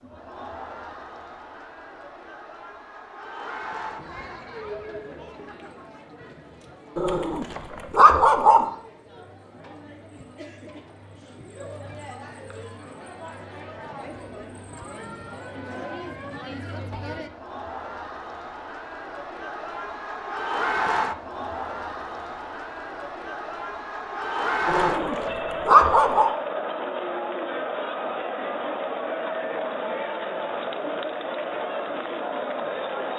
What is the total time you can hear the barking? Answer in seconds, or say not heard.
3 s.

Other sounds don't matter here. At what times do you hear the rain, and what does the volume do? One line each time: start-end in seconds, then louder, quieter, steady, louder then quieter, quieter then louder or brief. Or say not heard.
not heard.